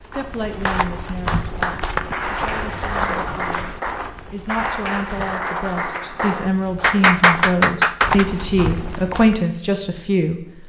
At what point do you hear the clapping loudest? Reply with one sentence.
The loudest moment of the clapping is at 7 seconds.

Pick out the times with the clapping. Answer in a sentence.
You can hear the clapping from 0.7 to 8.2 s.